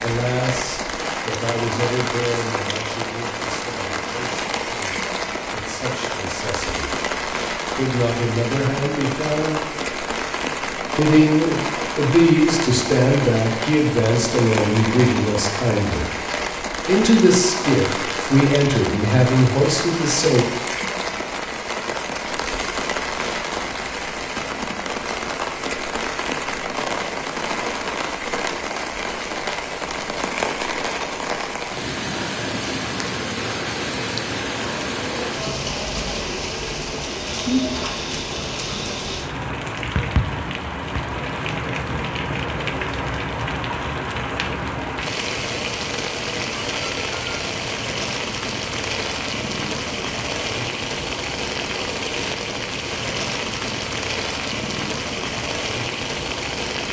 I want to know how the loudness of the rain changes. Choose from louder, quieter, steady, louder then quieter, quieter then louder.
steady.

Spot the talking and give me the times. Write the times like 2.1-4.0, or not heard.
0.0-7.0, 7.7-9.6, 10.9-16.1, 16.9-20.4.